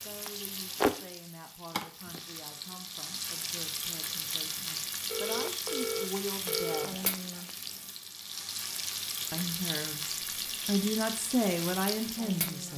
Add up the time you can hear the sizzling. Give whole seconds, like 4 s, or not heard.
13 s.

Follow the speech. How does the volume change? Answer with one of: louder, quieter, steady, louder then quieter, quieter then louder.
louder.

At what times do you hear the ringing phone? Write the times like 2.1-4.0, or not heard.
5.0-7.1.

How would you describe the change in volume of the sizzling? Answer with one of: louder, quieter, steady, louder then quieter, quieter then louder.
steady.